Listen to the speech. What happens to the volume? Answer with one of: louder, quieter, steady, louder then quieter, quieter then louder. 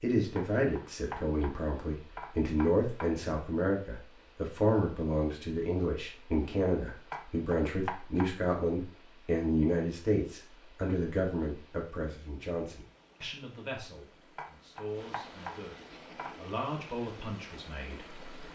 quieter.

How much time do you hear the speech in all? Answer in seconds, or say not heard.
18 s.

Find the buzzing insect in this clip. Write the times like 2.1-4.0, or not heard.
not heard.